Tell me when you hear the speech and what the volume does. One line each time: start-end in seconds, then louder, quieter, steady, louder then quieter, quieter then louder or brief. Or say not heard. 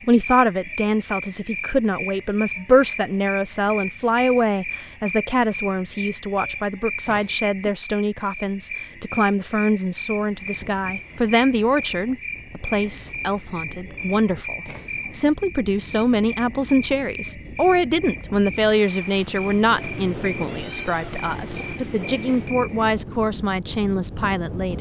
0.0-24.7 steady.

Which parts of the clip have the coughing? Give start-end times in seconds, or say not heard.
not heard.